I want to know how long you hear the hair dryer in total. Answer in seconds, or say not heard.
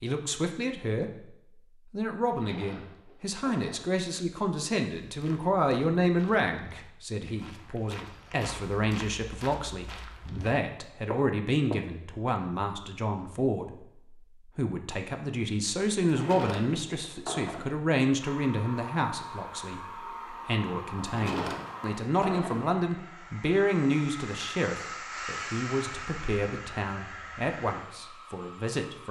11 s.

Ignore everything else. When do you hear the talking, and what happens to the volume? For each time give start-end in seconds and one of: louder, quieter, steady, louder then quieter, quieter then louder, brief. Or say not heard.
0.0-29.0 steady.